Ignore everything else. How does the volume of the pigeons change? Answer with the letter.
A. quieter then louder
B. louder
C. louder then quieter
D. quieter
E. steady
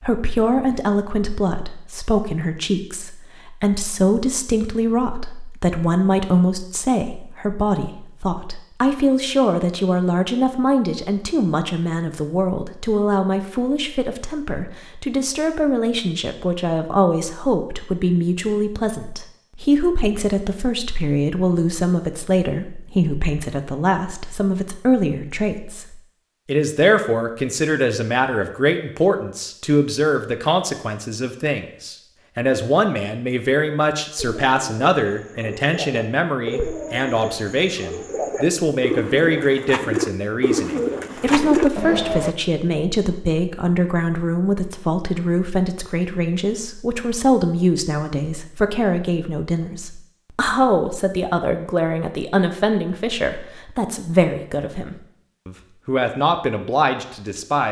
B.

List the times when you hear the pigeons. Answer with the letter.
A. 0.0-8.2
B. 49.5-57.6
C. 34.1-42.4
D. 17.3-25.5
C.